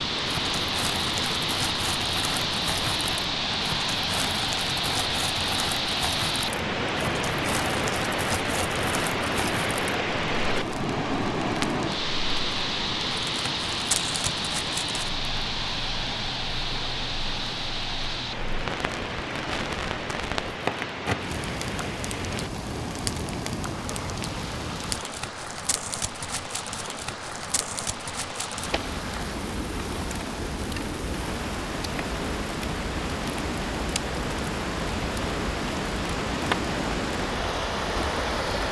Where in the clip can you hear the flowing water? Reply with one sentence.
The flowing water can be heard from 0.0 to 38.6 s.